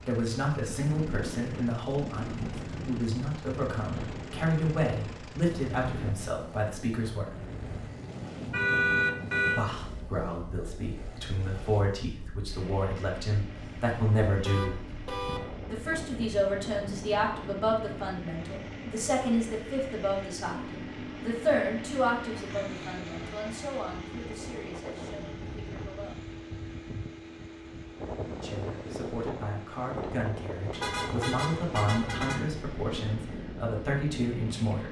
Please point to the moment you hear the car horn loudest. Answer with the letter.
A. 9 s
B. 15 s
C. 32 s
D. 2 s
A.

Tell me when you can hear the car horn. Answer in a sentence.
The car horn can be heard from 8.5 to 9.6 s, from 13.6 to 15.4 s and from 30.7 to 32.5 s.